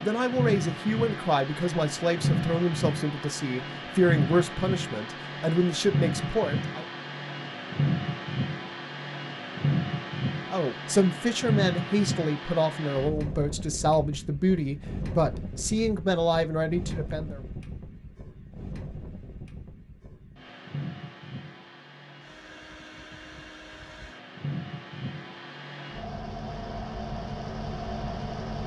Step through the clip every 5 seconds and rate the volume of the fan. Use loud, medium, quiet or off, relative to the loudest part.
loud, loud, loud, medium, medium, medium.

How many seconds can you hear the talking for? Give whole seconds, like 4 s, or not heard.
14 s.